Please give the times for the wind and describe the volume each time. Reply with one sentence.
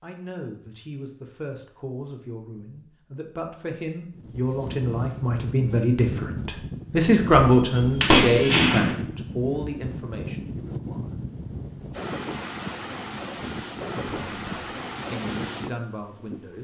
The wind can be heard from 4.1 to 16.5 s, at a steady volume.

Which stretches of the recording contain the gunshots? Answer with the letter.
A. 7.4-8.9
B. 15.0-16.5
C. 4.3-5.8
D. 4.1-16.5
A.